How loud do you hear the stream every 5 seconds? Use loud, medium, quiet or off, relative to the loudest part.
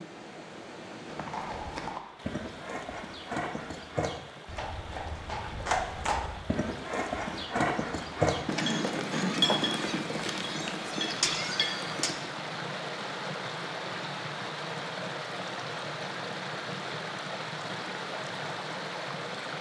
medium, medium, loud, loud.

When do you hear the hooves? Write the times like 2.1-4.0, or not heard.
1.1-12.2.